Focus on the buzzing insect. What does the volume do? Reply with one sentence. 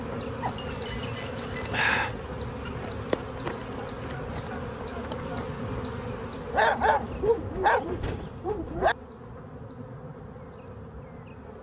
The loudness of the buzzing insect goes down.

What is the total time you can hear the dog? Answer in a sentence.
The dog can be heard for 4 seconds in total.